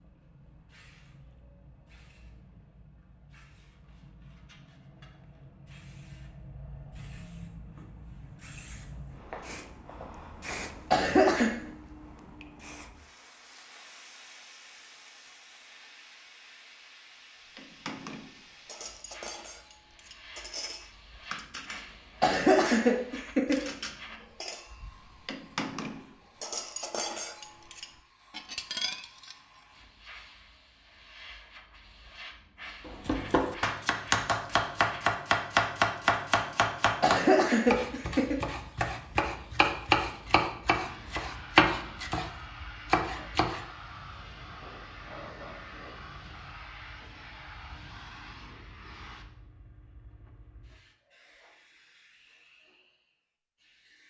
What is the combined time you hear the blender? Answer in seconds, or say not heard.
not heard.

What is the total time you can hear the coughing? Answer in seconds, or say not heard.
3 s.